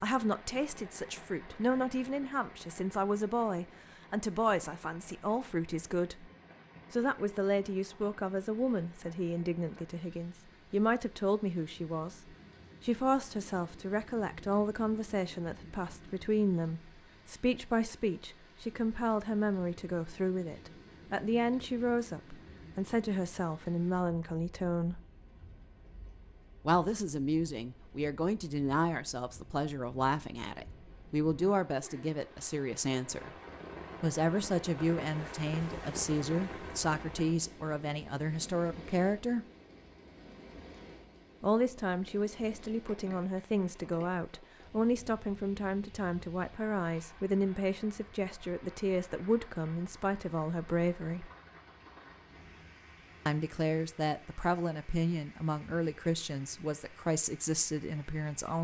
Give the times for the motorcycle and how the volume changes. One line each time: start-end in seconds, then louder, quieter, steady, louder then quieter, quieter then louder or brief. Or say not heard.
not heard.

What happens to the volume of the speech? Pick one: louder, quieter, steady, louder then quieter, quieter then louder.
steady.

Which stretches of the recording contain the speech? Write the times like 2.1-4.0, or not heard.
0.0-6.3, 6.9-25.0, 26.6-33.3, 34.0-39.5, 41.4-51.3, 53.2-58.6.